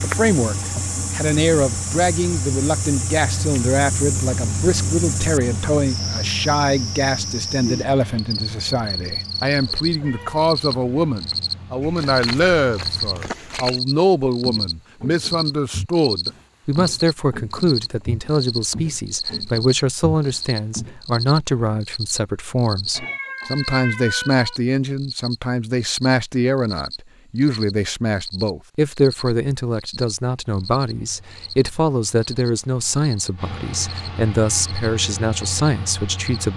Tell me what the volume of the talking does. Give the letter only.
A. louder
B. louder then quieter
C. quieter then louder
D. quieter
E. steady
E.